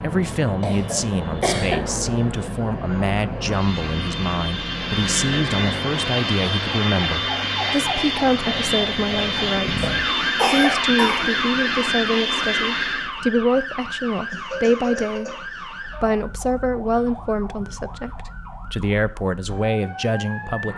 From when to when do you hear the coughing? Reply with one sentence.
You can hear the coughing from 0.6 to 1.8 s, from 9.8 to 11.3 s and from 14.3 to 15.7 s.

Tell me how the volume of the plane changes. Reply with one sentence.
The volume of the plane goes up.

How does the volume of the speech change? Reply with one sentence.
The volume of the speech stays about the same.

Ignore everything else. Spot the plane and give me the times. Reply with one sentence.
The plane can be heard from 0.0 to 13.1 s.